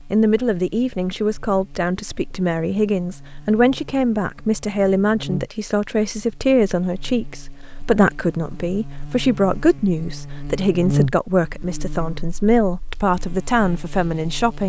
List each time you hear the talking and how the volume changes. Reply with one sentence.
You can hear the talking from 0.1 to 14.6 s, at a steady volume.